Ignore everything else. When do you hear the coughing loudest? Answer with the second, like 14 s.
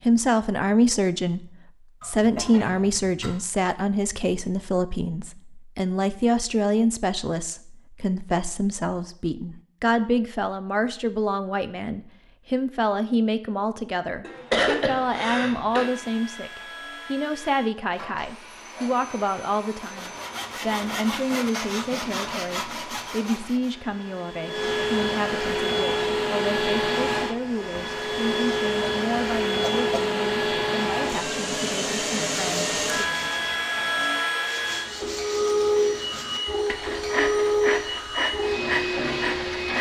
15 s.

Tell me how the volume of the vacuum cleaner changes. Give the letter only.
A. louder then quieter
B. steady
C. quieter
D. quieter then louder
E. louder
E.